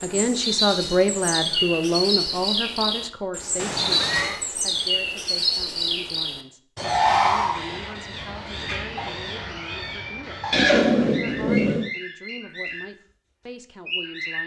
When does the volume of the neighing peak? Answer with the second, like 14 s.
11 s.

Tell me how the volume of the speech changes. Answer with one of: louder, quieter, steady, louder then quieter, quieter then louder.
quieter.